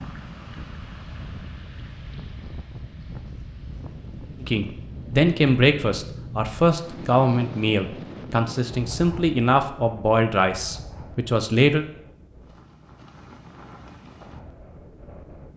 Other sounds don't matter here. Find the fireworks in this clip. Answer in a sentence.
The fireworks can't be heard in this clip.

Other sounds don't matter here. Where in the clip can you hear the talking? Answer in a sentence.
You can hear the talking from 4.4 to 11.8 s.